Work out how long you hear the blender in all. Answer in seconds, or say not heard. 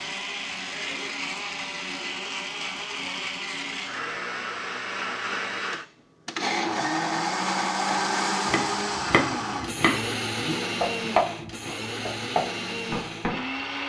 14 s.